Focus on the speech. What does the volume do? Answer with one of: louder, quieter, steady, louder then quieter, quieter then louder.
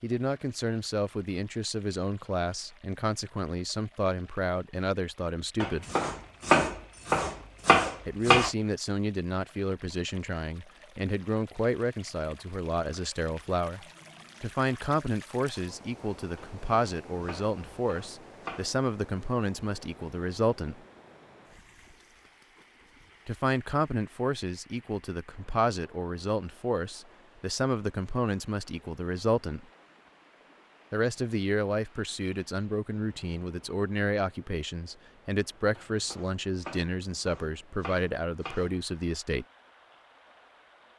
steady.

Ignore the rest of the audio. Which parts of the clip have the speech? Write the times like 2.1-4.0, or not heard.
0.0-5.8, 8.1-20.8, 23.2-29.6, 30.9-39.5.